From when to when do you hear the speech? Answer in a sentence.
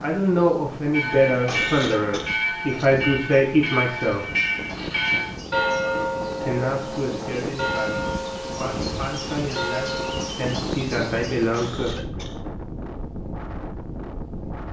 The speech can be heard from 0.0 to 4.2 s and from 6.4 to 12.2 s.